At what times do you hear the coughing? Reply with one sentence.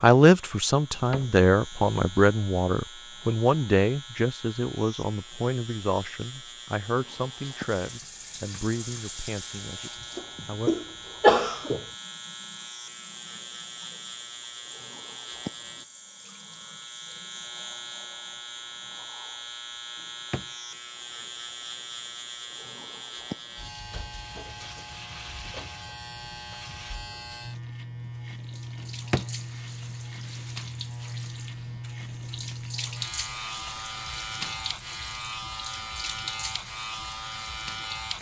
You can hear the coughing from 10.2 to 11.8 s.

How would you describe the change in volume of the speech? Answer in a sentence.
The volume of the speech goes down.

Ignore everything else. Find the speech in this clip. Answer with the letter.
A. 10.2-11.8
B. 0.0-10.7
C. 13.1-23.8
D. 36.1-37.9
B.